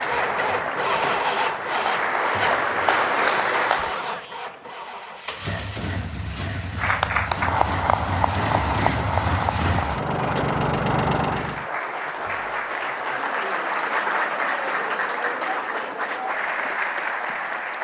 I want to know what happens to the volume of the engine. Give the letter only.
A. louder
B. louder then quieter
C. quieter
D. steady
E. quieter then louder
E.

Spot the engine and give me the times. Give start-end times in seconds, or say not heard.
0.0-11.7.